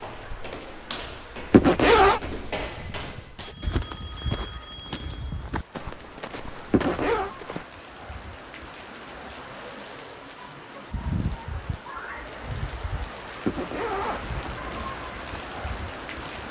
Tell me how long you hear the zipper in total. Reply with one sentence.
You can hear the zipper for 3 seconds altogether.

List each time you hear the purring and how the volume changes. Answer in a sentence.
The purring can't be heard in this clip.